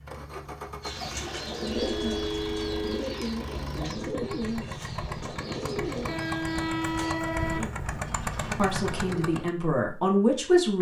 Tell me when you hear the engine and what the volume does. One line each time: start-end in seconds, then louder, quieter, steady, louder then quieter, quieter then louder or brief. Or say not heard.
0.0-9.6 louder.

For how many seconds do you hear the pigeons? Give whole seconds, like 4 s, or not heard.
9 s.